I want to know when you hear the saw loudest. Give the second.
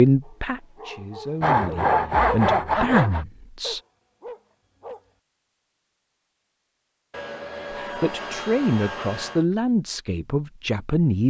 2 s.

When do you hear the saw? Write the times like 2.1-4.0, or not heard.
1.4-3.2, 7.1-9.4.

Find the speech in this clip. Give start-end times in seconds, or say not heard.
0.0-3.8, 7.7-11.2.